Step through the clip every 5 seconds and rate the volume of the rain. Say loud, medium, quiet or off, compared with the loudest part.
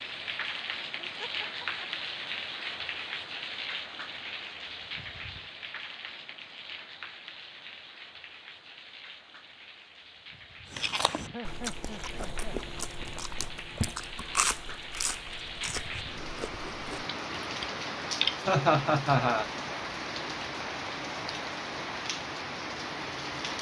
loud, medium, medium, loud, loud.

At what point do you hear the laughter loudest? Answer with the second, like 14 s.
19 s.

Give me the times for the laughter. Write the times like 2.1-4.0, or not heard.
1.0-1.9, 11.2-12.7, 18.4-19.4.